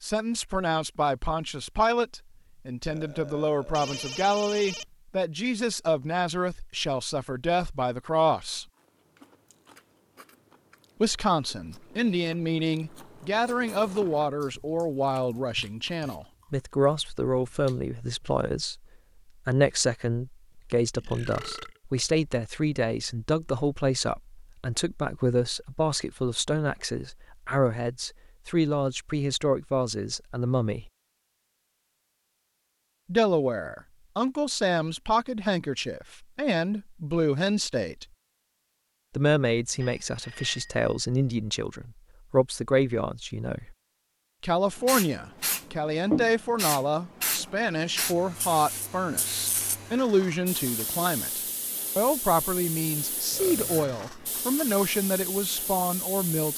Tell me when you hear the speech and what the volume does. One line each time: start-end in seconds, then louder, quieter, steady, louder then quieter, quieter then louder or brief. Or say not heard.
0.0-8.7 steady
11.0-18.8 steady
19.4-30.9 steady
33.0-38.0 steady
39.1-43.8 steady
44.4-56.5 steady.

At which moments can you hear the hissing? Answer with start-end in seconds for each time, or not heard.
44.8-56.5.